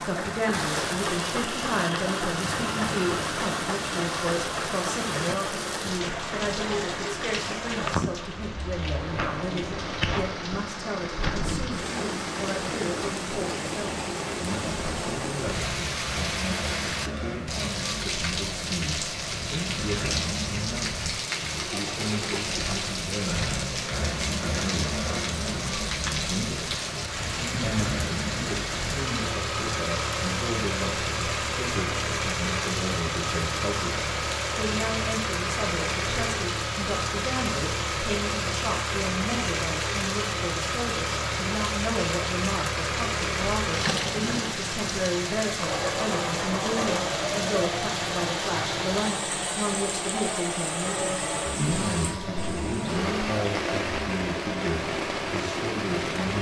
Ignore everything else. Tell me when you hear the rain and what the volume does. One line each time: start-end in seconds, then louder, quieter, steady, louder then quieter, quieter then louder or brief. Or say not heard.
0.0-56.3 steady.